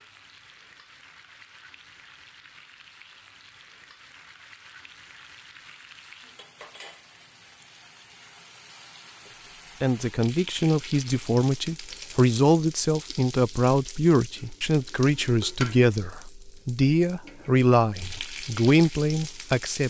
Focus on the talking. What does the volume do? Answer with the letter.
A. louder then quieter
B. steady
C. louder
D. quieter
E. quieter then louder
B.